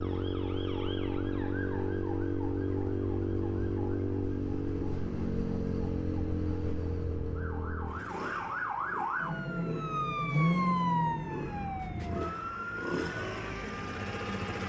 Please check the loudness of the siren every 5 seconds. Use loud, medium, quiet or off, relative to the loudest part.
quiet, medium, loud.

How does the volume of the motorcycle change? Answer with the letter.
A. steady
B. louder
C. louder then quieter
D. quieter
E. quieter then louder
E.